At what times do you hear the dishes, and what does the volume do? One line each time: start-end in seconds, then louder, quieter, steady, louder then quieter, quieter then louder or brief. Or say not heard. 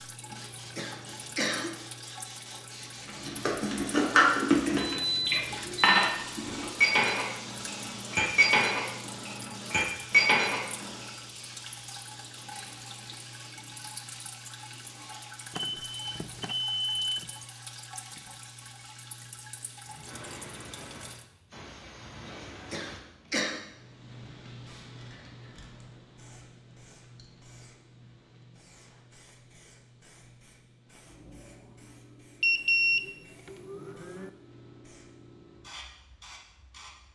3.0-11.1 steady.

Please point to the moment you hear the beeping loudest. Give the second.
33 s.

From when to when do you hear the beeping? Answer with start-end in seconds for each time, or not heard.
4.8-6.0, 15.5-17.3, 32.4-34.3.